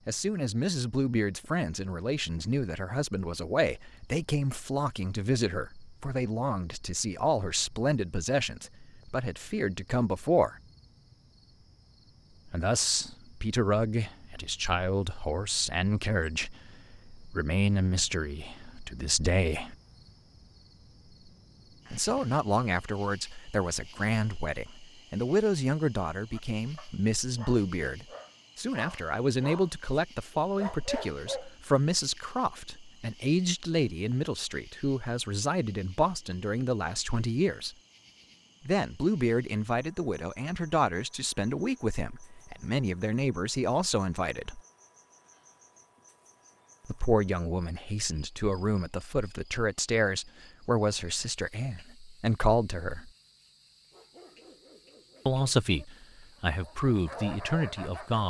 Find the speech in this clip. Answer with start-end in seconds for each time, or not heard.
0.1-10.6, 12.4-19.8, 21.9-37.8, 38.6-44.6, 46.9-53.1, 55.2-58.2.